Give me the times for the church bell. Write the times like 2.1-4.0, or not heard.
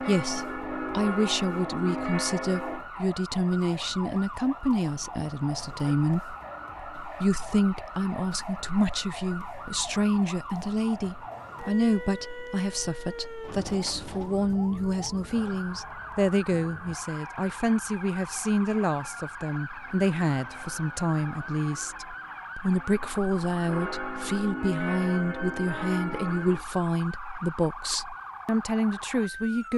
0.0-2.9, 19.8-26.6.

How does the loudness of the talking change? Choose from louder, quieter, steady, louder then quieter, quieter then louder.
steady.